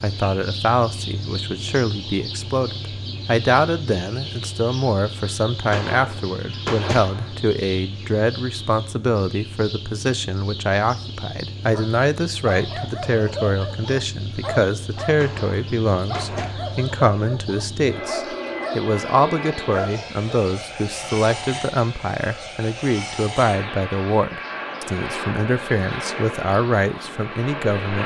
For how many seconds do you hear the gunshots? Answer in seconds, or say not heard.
3 s.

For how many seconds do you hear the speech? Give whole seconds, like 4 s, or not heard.
28 s.